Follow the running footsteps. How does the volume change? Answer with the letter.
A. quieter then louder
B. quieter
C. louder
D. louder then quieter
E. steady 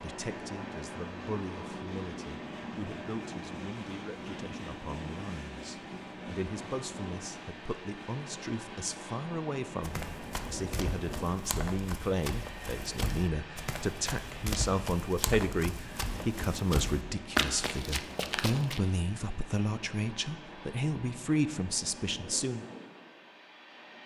C.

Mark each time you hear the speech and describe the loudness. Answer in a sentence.
You can hear the speech from 0.0 to 22.6 s, getting louder.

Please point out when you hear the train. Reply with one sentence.
You can hear the train from 0.0 to 24.0 s.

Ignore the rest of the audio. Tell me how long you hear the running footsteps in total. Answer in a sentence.
You can hear the running footsteps for 9 seconds altogether.